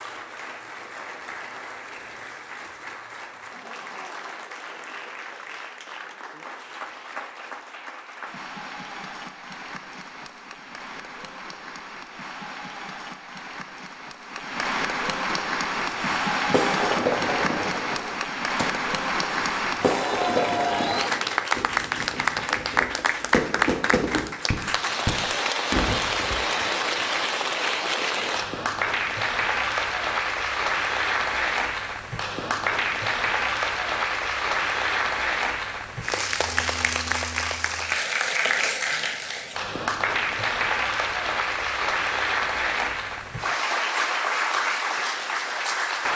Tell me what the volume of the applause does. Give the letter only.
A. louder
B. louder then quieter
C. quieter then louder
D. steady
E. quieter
A.